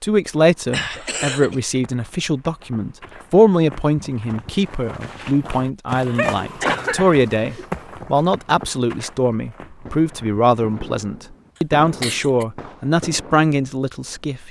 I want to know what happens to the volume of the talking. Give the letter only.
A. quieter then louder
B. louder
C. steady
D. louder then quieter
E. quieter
C.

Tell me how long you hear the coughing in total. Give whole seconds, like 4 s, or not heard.
3 s.